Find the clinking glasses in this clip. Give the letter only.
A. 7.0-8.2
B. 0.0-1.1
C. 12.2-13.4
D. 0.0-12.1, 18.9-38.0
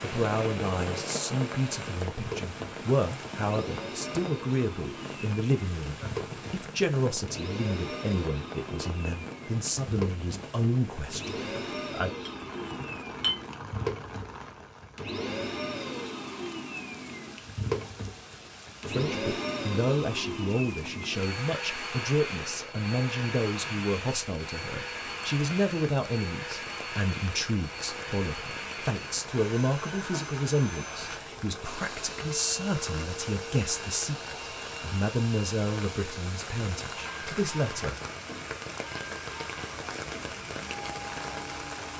C.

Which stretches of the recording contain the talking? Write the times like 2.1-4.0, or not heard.
0.0-12.1, 18.9-38.0.